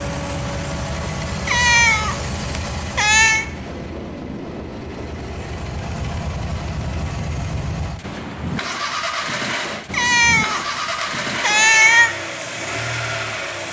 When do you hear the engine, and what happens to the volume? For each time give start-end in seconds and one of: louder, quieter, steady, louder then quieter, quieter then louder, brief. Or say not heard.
0.0-13.6 quieter then louder.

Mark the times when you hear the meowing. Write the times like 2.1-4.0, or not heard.
1.4-3.5, 9.9-12.2.